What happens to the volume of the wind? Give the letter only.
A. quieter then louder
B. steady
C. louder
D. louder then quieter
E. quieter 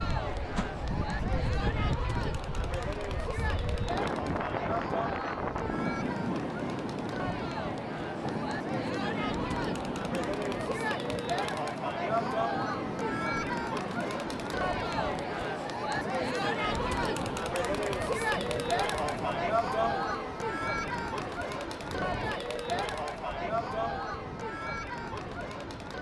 E.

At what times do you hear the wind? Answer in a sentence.
You can hear the wind from 0.0 to 25.9 s.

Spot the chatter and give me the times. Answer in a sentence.
The chatter can be heard from 0.0 to 25.9 s.